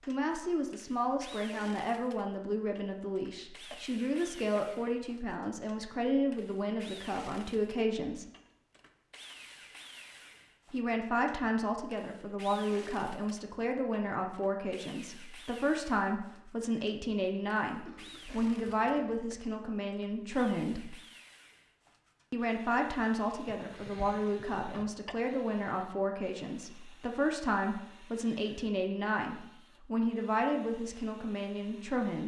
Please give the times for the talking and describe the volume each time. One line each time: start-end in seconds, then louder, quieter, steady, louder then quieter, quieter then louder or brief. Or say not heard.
0.1-8.2 steady
10.7-20.9 steady
22.3-32.2 steady.